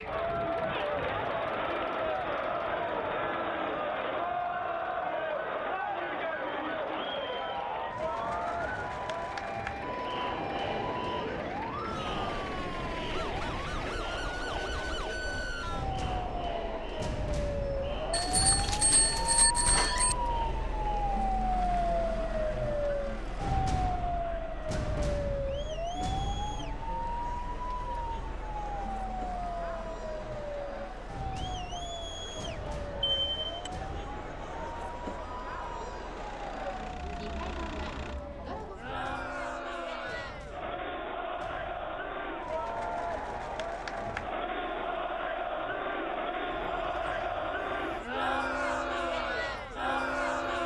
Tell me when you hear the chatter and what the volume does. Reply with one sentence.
The chatter can be heard from 0.0 to 50.6 s, getting quieter then louder.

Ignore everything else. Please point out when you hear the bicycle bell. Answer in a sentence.
You can hear the bicycle bell from 18.1 to 20.1 s and from 33.0 to 33.7 s.